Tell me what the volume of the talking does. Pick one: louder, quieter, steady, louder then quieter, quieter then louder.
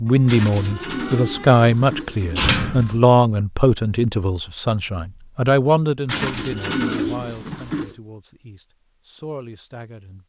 quieter.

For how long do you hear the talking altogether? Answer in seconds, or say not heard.
10 s.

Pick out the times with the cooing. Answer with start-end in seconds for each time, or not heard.
0.2-3.0, 6.0-8.0.